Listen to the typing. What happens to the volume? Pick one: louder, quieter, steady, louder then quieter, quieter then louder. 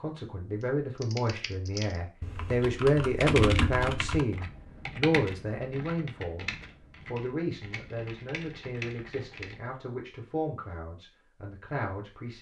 louder then quieter.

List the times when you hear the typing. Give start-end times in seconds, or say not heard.
0.6-9.6.